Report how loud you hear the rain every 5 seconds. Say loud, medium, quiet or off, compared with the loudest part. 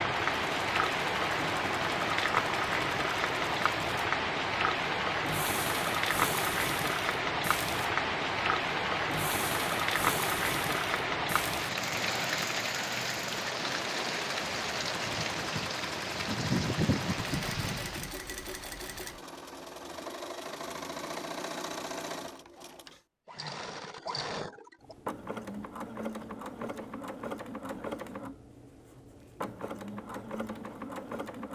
loud, loud, loud, loud, off, off, off.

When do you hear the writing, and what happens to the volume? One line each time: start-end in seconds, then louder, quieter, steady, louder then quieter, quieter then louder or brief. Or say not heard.
not heard.